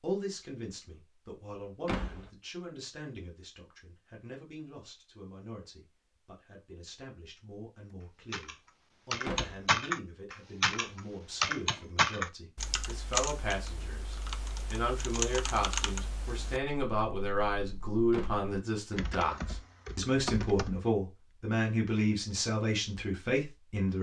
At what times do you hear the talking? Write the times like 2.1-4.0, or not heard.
0.0-23.9.